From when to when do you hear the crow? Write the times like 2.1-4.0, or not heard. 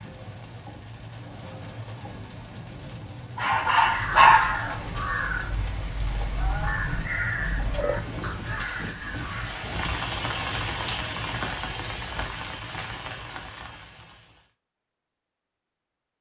3.8-9.6.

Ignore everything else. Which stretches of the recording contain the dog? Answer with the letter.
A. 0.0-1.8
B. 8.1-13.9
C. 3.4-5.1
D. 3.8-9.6
C.